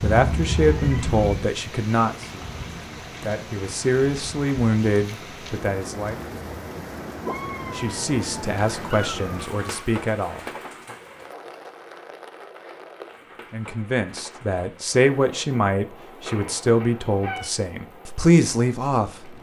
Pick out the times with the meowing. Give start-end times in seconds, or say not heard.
0.0-1.5, 7.2-9.8, 16.2-17.5.